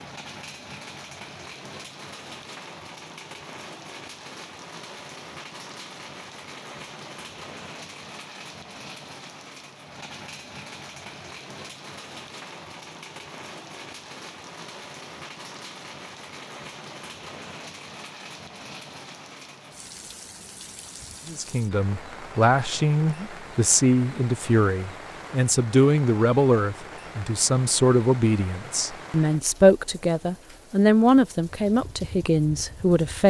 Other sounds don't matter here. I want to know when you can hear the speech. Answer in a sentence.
You can hear the speech from 21.2 to 33.2 s.